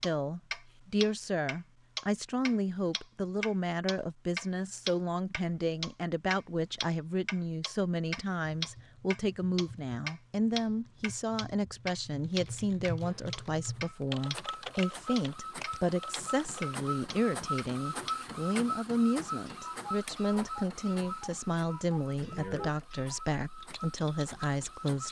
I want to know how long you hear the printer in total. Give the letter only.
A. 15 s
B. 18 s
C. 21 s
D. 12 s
D.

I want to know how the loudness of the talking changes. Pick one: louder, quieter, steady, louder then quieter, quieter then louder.
steady.